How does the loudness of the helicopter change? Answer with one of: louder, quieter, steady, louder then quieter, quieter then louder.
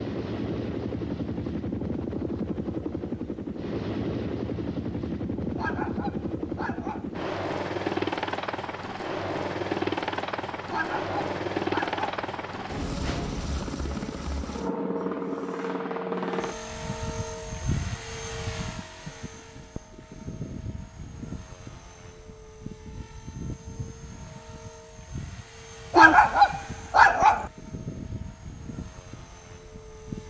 quieter.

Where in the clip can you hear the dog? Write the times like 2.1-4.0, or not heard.
5.5-7.1, 10.7-12.0, 25.9-27.5.